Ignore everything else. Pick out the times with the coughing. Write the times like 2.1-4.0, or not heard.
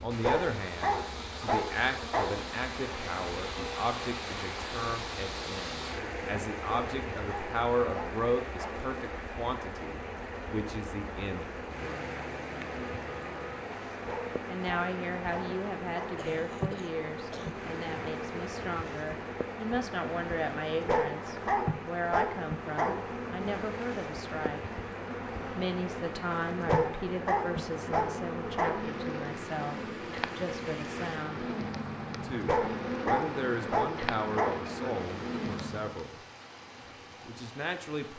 16.1-17.6.